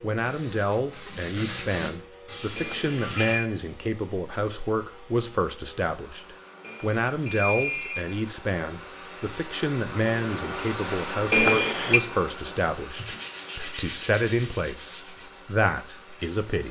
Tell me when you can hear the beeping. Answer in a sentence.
You can hear the beeping from 2.5 to 3.5 s, from 6.7 to 8.2 s and from 11.3 to 12.0 s.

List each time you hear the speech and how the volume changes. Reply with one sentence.
The speech can be heard from 0.0 to 16.6 s, at a steady volume.